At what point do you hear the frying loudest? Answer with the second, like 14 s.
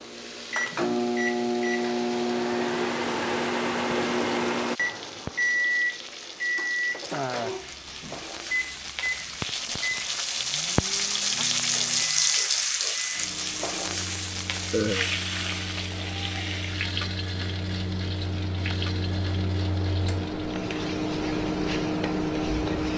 12 s.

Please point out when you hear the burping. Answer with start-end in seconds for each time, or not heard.
14.7-15.1.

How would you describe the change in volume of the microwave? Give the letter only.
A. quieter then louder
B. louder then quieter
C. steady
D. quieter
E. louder
A.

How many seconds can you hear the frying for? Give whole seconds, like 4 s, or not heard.
23 s.